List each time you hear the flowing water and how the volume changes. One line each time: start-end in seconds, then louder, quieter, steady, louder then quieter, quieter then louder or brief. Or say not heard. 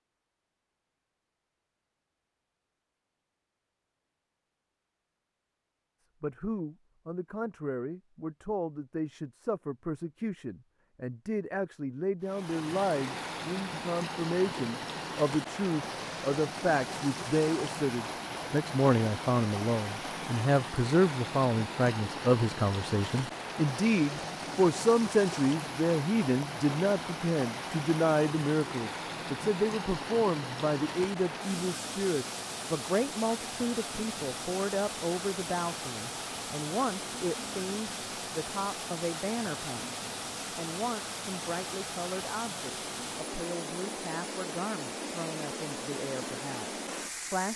12.2-47.5 steady.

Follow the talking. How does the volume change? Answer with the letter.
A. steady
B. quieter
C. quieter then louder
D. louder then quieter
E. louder
D.